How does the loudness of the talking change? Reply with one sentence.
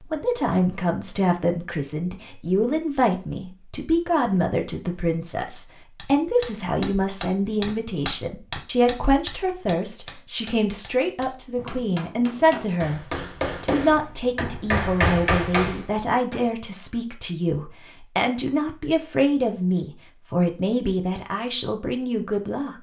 The loudness of the talking stays about the same.